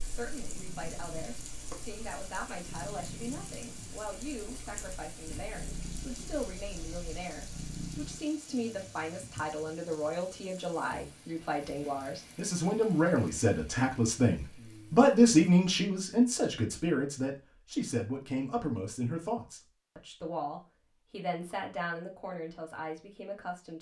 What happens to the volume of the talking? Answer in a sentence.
The loudness of the talking goes up, then down.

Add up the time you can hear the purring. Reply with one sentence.
The purring can be heard for 8 seconds in total.